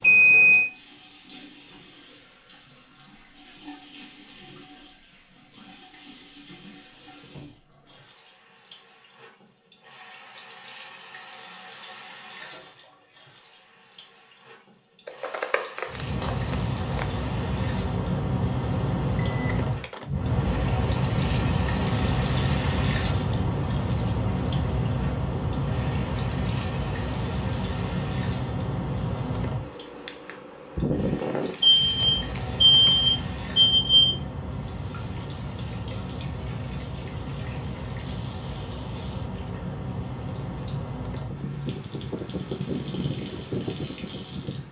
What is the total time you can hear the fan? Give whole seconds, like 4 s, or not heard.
29 s.